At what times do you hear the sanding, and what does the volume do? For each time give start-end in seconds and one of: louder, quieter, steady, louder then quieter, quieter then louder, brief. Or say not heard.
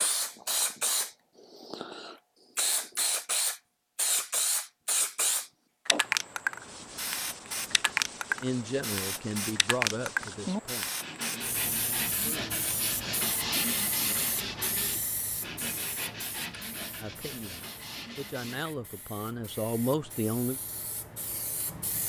6.6-18.6 louder then quieter.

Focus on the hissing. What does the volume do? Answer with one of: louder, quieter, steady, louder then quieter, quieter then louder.
quieter.